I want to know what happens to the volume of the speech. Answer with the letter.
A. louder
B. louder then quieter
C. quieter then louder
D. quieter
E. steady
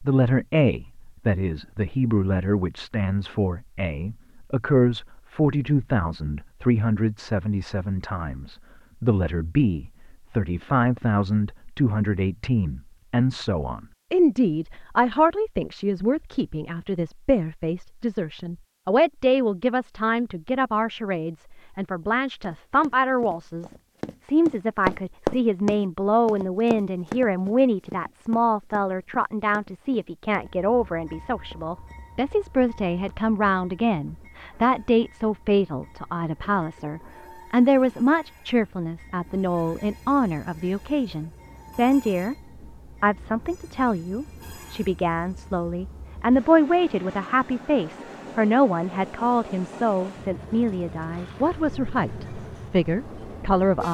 E.